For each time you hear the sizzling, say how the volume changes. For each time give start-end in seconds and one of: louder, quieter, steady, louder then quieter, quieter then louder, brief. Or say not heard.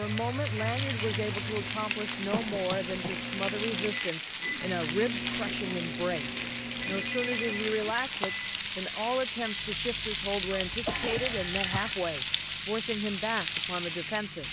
0.0-14.4 steady.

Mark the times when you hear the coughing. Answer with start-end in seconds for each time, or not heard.
2.3-3.2, 10.5-11.9.